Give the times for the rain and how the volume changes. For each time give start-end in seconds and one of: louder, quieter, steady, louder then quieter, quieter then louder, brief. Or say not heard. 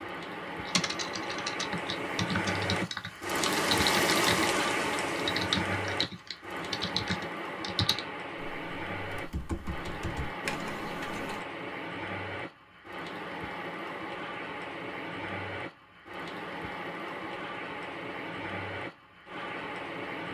0.0-20.2 quieter.